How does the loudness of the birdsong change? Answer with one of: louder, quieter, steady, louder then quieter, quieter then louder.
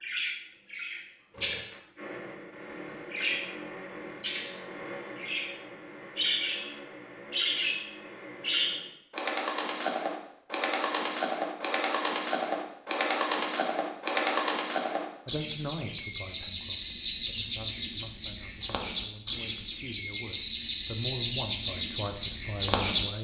louder.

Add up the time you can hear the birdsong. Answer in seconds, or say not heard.
23 s.